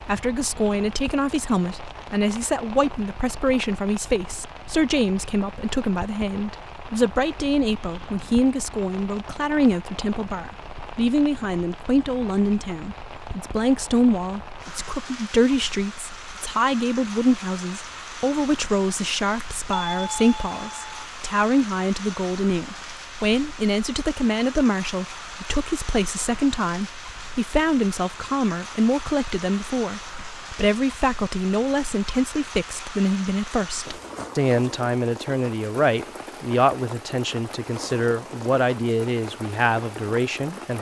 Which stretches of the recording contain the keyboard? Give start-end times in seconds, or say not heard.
not heard.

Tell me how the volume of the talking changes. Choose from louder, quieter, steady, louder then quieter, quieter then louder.
steady.